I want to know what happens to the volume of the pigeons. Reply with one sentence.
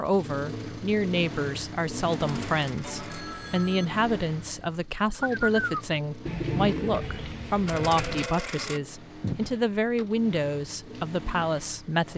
The loudness of the pigeons goes down.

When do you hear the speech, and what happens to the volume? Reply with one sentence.
You can hear the speech from 0.0 to 12.1 s, at a steady volume.